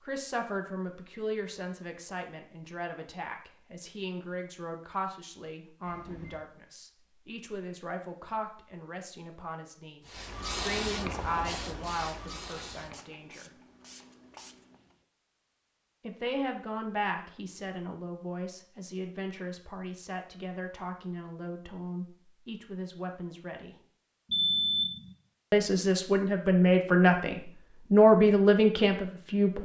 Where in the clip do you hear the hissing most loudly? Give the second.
11 s.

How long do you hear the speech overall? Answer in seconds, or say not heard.
25 s.